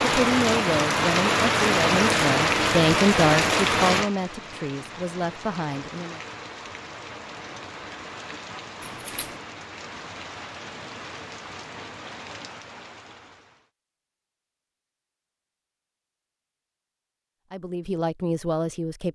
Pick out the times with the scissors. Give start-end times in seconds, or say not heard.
8.8-9.4.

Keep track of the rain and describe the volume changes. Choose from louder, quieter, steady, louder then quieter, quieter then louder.
quieter.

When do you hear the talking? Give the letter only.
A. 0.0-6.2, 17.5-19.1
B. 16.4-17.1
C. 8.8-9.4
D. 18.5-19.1
A.